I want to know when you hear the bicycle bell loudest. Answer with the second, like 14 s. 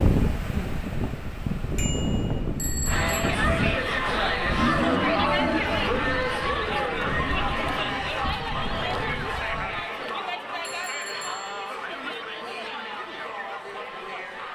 3 s.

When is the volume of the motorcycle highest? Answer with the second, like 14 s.
5 s.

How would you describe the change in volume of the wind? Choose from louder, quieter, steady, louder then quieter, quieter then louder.
quieter.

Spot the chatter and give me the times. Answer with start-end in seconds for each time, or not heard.
2.9-14.5.